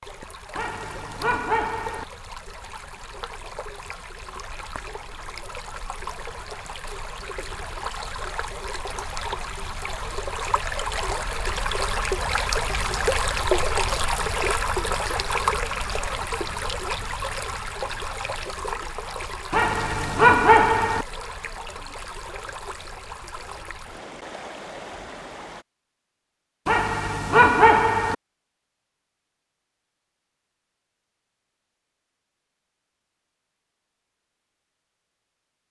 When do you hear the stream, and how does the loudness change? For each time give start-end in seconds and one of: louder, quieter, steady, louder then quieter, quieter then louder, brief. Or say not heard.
0.0-25.6 louder then quieter.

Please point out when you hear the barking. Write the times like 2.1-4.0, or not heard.
0.6-2.0, 19.5-21.1, 26.6-28.1.